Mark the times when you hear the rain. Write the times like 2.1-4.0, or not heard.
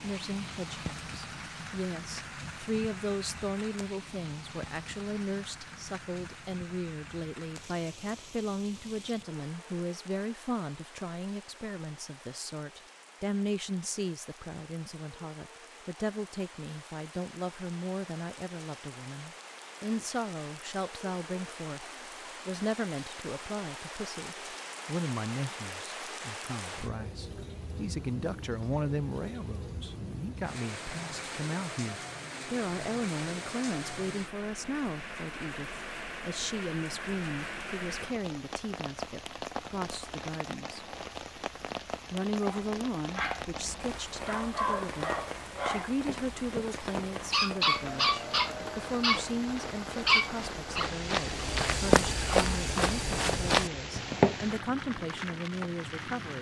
0.0-56.3.